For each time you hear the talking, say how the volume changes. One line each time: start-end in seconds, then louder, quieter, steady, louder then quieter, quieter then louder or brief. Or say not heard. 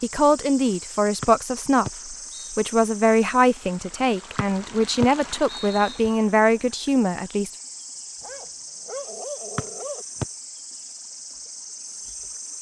0.0-7.5 steady.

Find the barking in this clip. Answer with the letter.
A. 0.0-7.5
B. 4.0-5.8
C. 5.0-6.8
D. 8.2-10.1
D.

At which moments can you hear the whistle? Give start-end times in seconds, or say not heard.
1.2-2.5, 4.3-6.0, 9.6-10.2.